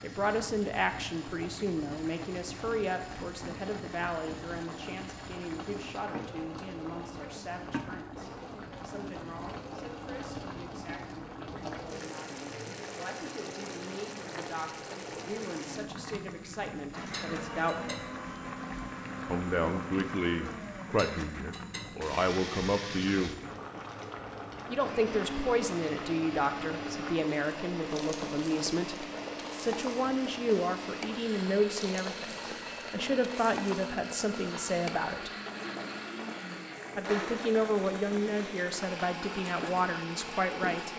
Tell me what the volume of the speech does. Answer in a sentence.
The volume of the speech goes down, then up.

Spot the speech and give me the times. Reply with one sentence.
The speech can be heard from 0.0 to 18.0 s, from 19.2 to 23.4 s, from 24.6 to 35.3 s and from 37.0 to 40.9 s.